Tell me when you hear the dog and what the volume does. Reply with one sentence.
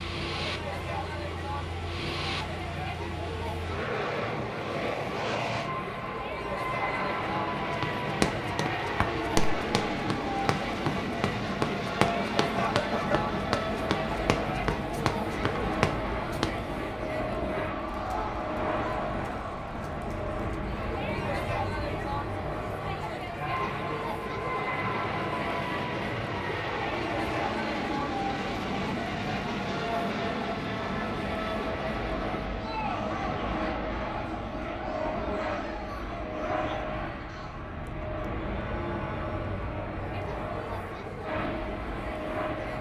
You can't hear the dog here.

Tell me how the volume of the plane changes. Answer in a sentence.
The volume of the plane stays about the same.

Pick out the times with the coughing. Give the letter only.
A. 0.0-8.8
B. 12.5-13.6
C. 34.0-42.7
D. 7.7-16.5
B.